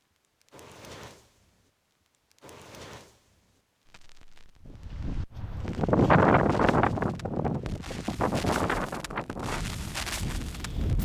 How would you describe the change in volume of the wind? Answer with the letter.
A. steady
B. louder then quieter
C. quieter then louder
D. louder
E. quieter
E.